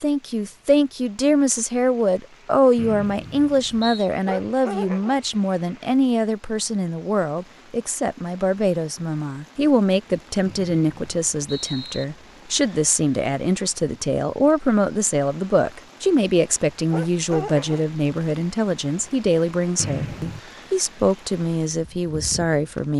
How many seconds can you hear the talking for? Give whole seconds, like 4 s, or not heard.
23 s.